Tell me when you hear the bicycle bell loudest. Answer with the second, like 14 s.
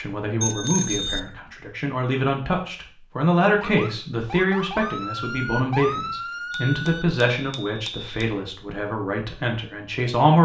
1 s.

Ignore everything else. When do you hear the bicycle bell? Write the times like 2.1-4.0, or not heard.
0.4-1.2, 6.5-8.3.